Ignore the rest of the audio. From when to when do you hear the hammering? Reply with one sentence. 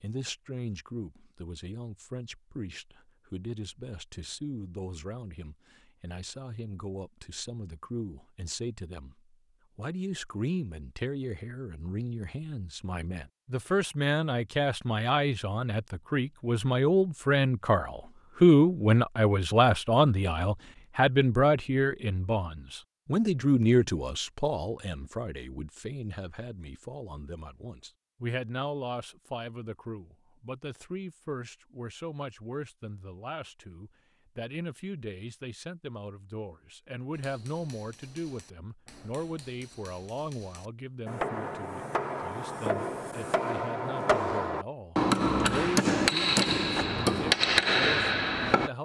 The hammering can be heard from 37.1 to 48.7 s.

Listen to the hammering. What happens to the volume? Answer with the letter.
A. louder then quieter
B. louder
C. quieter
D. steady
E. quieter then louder
B.